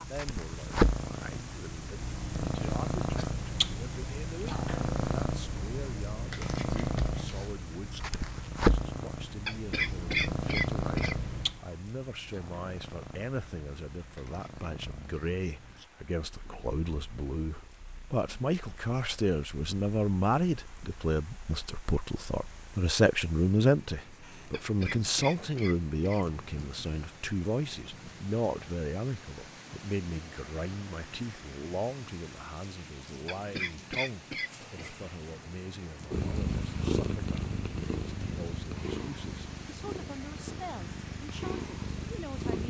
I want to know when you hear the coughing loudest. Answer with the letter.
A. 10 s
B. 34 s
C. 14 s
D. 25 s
A.